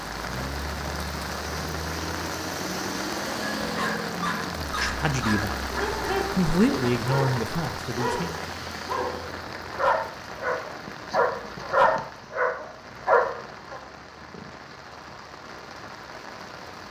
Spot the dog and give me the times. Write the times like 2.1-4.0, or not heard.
3.6-13.8.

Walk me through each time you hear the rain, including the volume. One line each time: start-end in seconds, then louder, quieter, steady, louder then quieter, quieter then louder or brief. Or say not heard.
0.0-16.8 quieter.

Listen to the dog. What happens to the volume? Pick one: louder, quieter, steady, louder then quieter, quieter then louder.
louder.